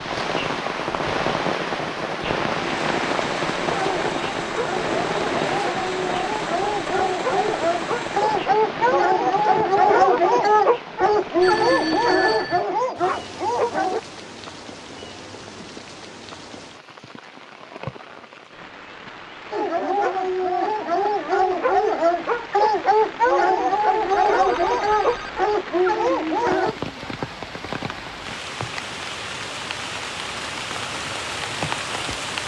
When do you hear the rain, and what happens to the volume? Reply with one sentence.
You can hear the rain from 0.0 to 32.4 s, getting quieter then louder.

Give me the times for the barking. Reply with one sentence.
The barking can be heard from 3.7 to 14.0 s and from 19.5 to 26.8 s.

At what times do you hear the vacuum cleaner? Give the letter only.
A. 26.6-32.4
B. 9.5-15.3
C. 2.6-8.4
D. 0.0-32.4
C.